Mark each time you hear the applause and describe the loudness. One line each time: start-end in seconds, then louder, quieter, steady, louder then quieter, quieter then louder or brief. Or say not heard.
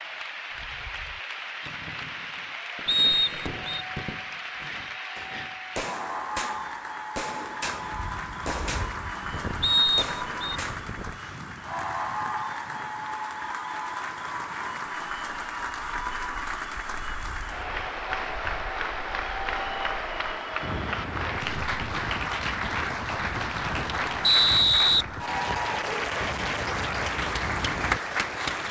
0.0-28.6 louder.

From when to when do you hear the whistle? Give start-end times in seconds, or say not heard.
2.9-3.9, 9.6-10.6, 24.2-25.7.